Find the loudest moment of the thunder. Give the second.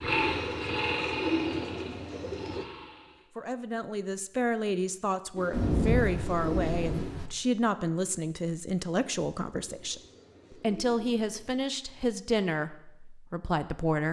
6 s.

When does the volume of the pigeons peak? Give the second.
1 s.